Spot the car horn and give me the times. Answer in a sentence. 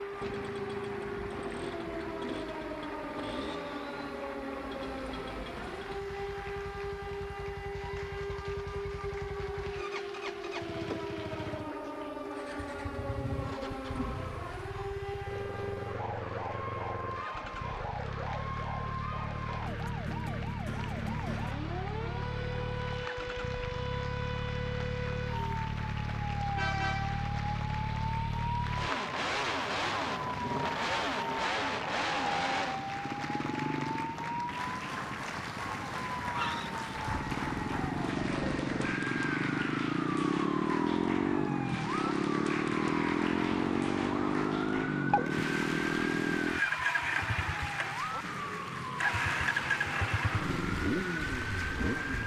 You can hear the car horn from 26.6 to 27.2 s.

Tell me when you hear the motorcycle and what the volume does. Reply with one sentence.
The motorcycle can be heard from 0.0 to 52.2 s, getting louder.